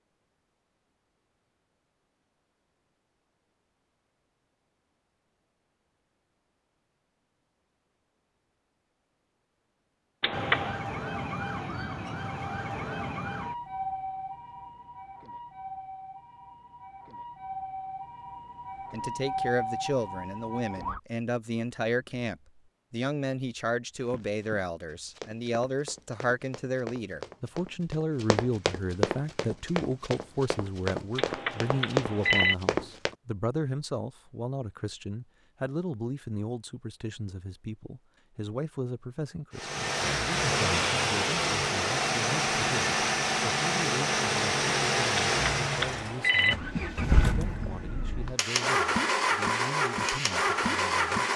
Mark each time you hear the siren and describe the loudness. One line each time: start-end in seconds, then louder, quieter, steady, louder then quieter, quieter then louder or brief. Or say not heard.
10.3-21.0 quieter then louder.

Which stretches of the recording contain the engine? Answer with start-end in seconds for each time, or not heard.
39.5-51.3.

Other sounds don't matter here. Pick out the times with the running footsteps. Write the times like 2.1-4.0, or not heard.
24.0-33.1.